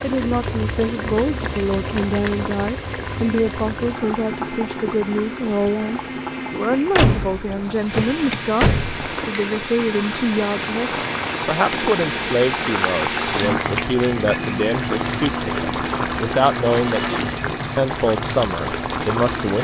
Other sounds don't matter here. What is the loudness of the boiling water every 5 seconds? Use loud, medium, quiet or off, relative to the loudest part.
loud, medium, loud, loud.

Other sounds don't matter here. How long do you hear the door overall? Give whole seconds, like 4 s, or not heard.
2 s.